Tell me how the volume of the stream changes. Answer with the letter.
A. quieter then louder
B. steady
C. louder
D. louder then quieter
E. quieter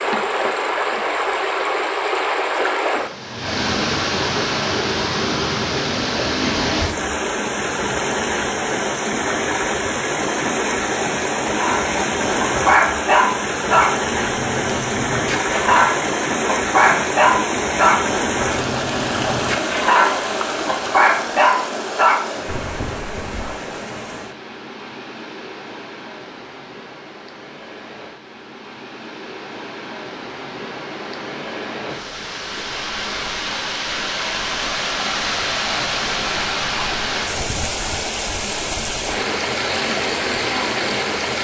A.